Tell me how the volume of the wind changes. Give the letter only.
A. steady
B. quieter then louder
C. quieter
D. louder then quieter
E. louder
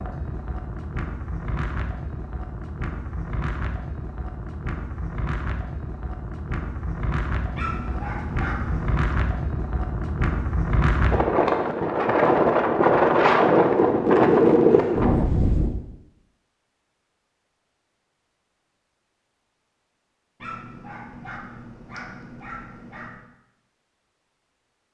E.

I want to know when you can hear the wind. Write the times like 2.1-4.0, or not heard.
0.0-15.8.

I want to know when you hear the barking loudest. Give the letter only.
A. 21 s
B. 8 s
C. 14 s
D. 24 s
B.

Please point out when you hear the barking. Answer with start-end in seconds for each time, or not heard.
7.5-9.1, 20.4-23.3.